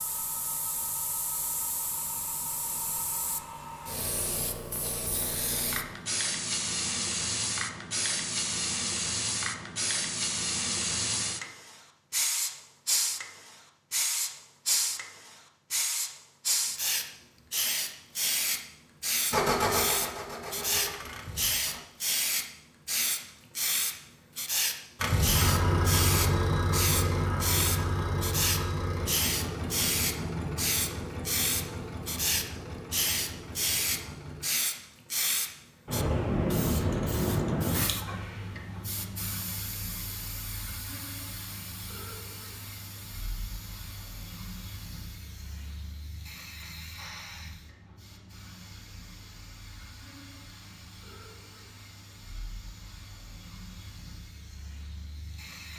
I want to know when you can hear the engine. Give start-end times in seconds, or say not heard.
19.3-21.8, 24.9-34.5.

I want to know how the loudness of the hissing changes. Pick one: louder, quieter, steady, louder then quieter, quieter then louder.
quieter.